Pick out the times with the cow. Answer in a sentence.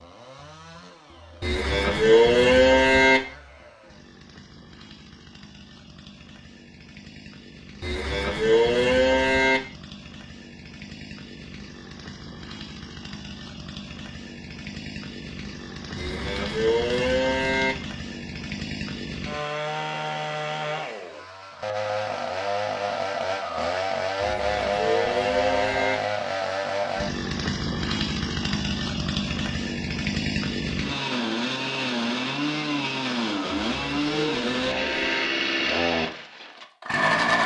The cow can be heard from 1.4 to 3.2 s, from 7.8 to 9.6 s, from 15.9 to 17.8 s, from 24.2 to 26.0 s and from 33.8 to 35.2 s.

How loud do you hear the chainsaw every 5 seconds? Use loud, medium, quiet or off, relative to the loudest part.
quiet, quiet, quiet, medium, loud, loud, loud, loud.